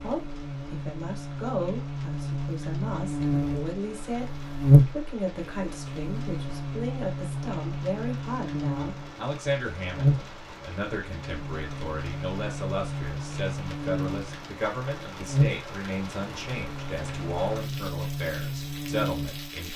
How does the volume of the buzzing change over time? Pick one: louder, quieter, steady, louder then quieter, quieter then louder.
louder then quieter.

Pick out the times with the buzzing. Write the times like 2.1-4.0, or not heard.
0.0-19.7.